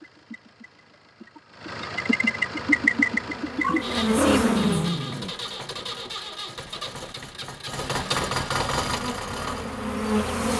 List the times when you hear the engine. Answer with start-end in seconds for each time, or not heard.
0.0-10.3.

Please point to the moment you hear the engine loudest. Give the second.
3 s.